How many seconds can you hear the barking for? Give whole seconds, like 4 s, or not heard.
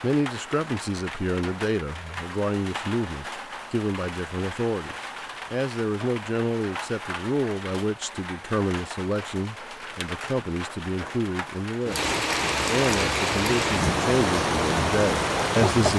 not heard.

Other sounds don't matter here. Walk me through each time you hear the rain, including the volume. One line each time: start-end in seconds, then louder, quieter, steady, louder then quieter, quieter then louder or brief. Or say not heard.
0.0-15.9 louder.